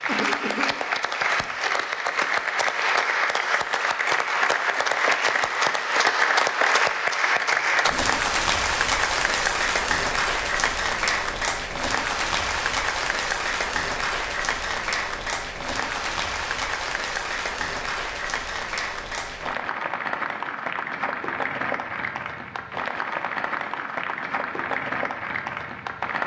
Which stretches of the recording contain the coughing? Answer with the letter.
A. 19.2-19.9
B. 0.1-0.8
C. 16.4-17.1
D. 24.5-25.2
B.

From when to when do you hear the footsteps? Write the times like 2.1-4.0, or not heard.
not heard.